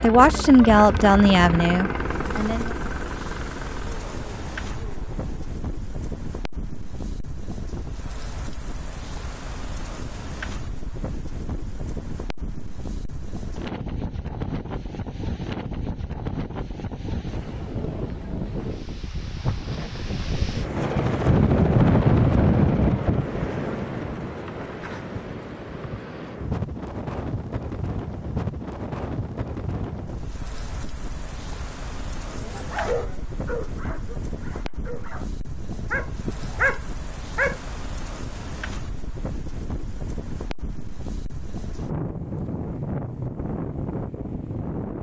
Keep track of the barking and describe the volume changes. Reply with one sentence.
The loudness of the barking goes down, then up.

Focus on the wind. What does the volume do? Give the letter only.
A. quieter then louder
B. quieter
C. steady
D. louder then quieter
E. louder
D.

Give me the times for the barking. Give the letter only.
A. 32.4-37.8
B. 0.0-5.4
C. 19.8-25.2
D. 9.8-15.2
A.